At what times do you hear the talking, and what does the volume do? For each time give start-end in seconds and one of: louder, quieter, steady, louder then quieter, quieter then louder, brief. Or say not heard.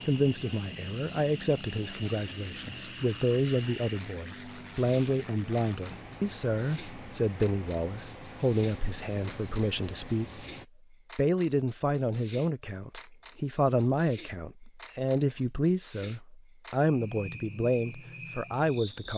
0.1-10.4 steady
11.2-19.1 steady.